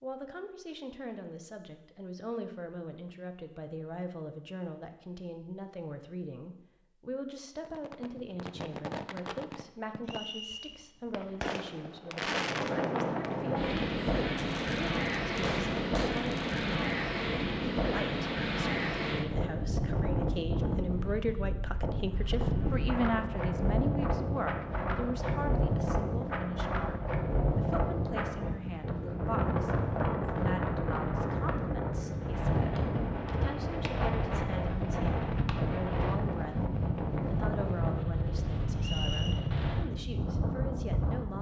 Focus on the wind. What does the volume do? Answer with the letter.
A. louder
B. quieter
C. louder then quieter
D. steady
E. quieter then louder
D.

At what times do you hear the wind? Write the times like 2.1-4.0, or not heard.
12.1-41.3.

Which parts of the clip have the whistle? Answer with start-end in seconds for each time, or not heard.
10.1-10.8, 38.8-39.4.